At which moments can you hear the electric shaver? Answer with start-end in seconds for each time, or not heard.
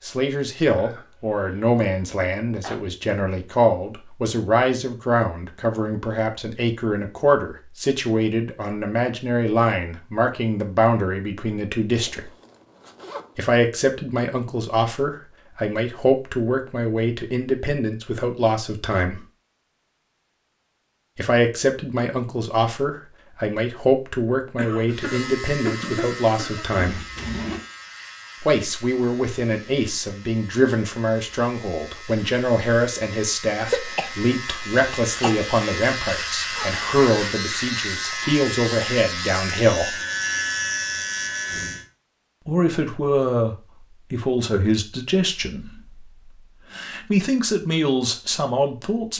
24.9-41.9.